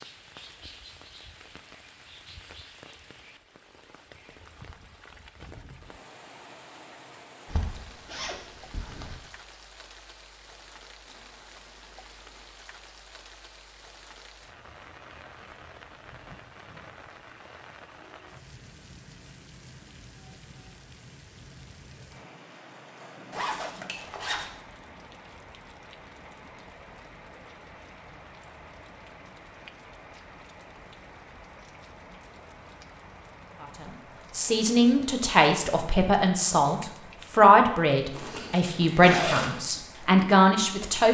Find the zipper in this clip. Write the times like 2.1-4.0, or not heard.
7.5-9.2, 23.3-24.5, 38.1-39.6.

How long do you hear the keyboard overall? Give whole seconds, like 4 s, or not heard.
not heard.